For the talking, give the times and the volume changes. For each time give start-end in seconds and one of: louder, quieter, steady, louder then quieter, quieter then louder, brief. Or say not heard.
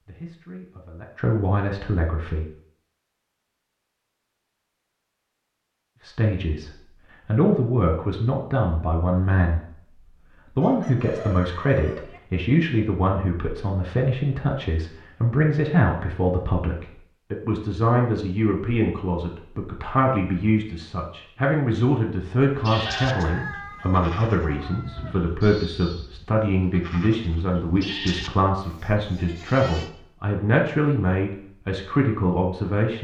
0.0-2.5 brief
6.0-32.9 steady.